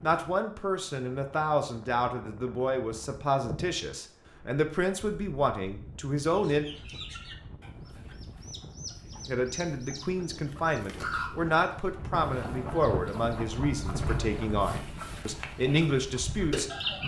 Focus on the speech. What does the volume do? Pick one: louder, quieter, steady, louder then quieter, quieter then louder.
steady.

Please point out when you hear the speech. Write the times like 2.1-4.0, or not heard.
0.0-6.7, 9.2-17.0.